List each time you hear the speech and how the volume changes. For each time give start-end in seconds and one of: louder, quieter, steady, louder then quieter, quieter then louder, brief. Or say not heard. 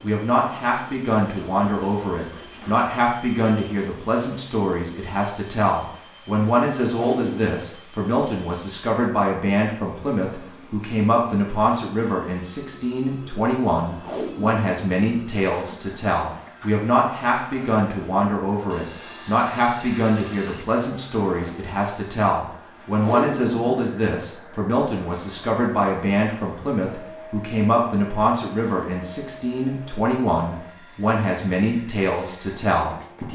0.0-33.3 steady.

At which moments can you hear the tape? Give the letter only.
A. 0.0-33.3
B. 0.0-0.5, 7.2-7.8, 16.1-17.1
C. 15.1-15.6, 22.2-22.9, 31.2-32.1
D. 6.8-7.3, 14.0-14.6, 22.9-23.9
D.